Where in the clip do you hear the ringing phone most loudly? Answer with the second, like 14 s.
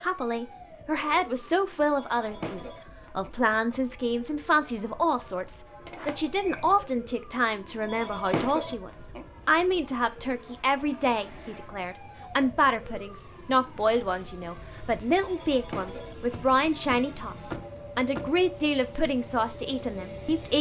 8 s.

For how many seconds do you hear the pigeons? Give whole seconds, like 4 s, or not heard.
not heard.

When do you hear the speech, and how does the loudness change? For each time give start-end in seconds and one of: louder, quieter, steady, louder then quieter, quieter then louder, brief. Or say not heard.
0.0-20.5 steady.